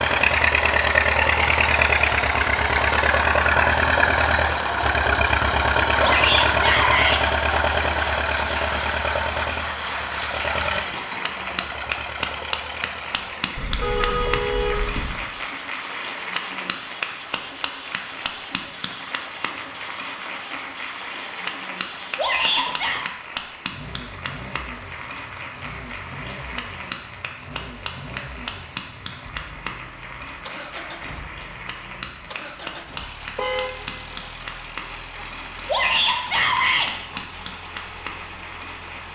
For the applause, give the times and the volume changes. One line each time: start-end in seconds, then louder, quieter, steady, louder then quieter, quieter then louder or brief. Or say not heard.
0.1-39.0 quieter.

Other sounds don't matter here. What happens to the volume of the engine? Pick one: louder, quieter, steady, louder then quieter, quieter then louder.
quieter.